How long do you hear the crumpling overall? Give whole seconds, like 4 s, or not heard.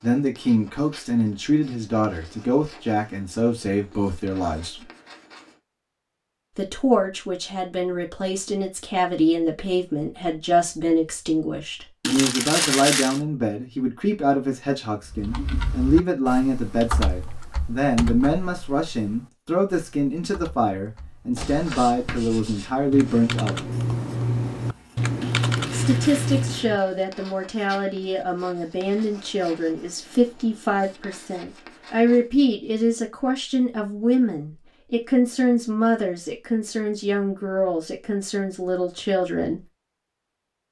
3 s.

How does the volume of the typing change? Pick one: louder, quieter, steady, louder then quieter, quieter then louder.
quieter then louder.